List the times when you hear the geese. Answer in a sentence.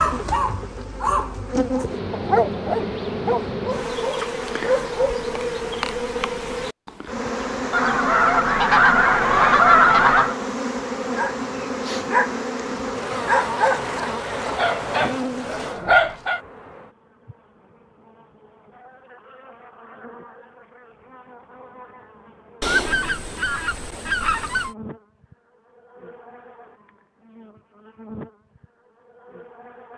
The geese can be heard from 7.7 to 10.3 s and from 22.6 to 24.8 s.